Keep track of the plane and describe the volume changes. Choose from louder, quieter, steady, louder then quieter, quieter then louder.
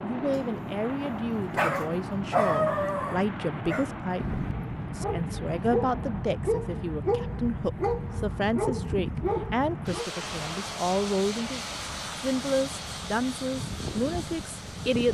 steady.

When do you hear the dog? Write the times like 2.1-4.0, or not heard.
0.3-10.1.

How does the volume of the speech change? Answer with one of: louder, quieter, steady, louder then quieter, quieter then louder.
steady.